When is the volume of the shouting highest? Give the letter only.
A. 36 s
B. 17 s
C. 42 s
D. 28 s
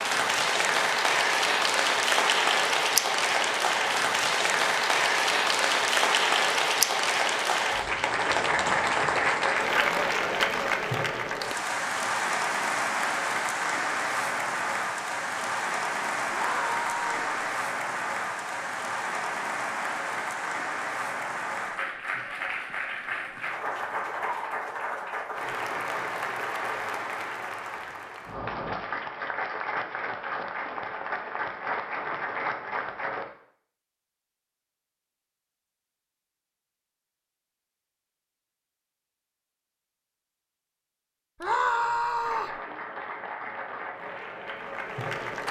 C.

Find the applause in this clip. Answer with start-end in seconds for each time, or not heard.
0.0-33.3, 42.2-45.4.